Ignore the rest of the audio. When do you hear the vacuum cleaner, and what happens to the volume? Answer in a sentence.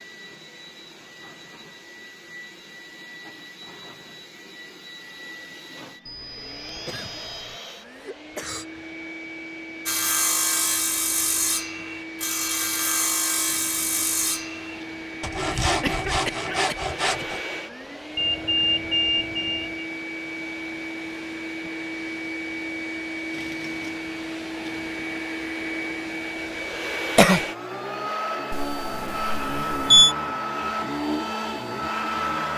The vacuum cleaner can be heard from 0.0 to 32.5 s, getting louder.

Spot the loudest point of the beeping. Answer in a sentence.
The loudest moment of the beeping is at 30 seconds.